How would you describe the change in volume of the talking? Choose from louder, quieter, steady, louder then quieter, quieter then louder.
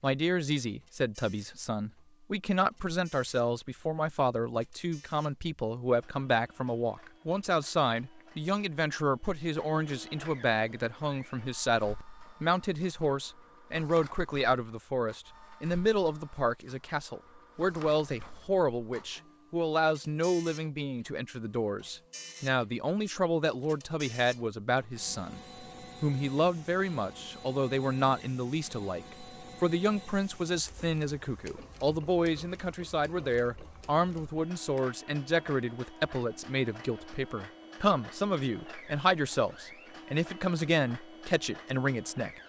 steady.